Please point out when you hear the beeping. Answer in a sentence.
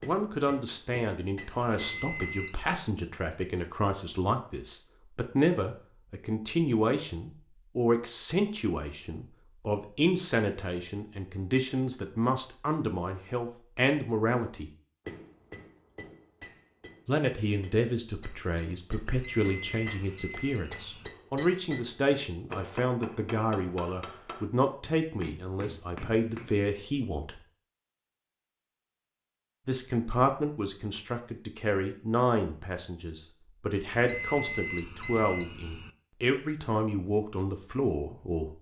The beeping can be heard from 1.6 to 2.6 s, from 19.1 to 21.1 s and from 33.9 to 35.9 s.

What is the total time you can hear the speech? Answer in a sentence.
You can hear the speech for 34 seconds altogether.